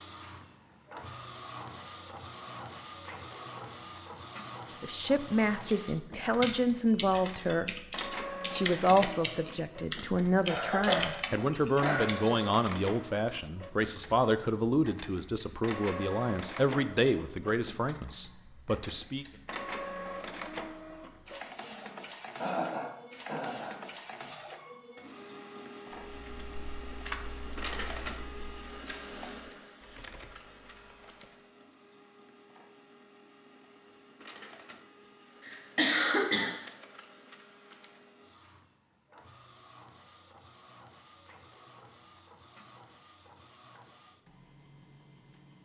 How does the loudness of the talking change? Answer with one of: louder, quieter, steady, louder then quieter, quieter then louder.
steady.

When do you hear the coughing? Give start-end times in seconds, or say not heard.
10.4-12.2, 22.4-23.8, 35.5-36.5.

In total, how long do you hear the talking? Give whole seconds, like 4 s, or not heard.
14 s.